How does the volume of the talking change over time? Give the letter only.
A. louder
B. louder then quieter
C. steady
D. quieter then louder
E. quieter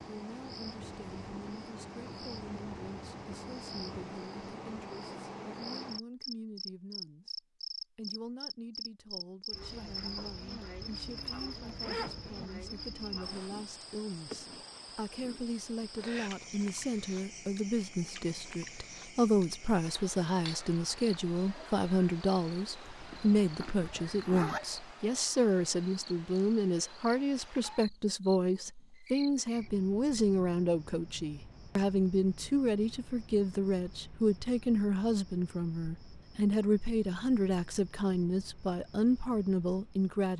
A.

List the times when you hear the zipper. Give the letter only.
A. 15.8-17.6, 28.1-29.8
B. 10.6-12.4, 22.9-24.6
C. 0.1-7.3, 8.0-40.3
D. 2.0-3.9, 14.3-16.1
B.